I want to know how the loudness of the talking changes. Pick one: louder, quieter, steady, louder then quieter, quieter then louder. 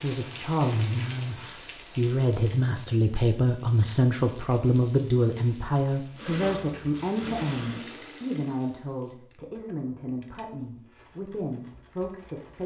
quieter.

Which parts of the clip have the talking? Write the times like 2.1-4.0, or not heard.
0.0-12.6.